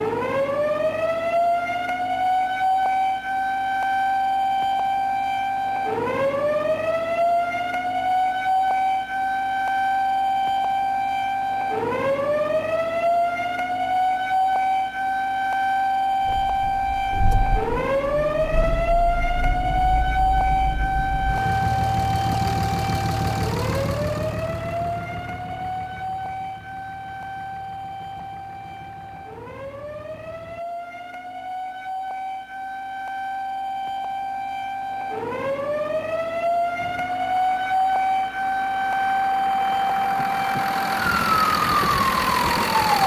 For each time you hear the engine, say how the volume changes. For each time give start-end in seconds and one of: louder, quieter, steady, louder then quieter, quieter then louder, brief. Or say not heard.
16.2-30.6 louder then quieter
36.8-43.0 louder.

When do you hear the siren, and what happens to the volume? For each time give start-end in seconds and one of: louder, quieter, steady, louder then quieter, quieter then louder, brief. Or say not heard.
0.0-43.0 quieter then louder.